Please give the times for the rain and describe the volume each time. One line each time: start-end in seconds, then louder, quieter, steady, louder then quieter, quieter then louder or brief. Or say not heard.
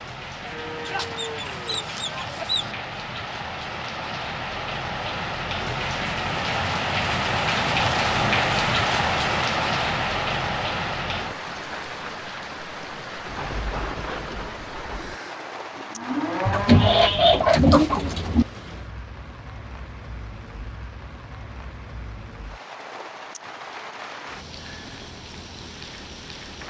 0.0-26.6 louder then quieter.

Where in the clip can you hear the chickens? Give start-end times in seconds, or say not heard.
0.8-2.8, 16.4-18.4.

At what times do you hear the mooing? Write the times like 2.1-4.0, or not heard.
0.4-2.5, 14.8-17.2.